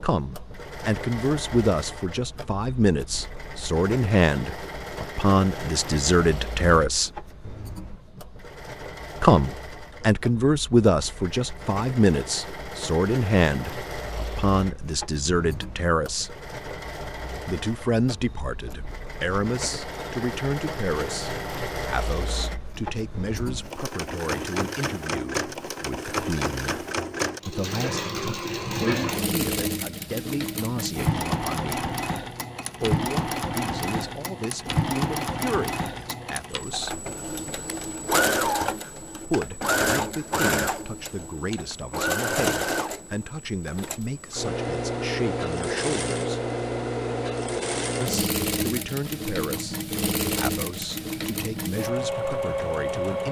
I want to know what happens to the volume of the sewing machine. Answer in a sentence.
The loudness of the sewing machine goes up.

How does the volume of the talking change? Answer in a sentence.
The volume of the talking goes down.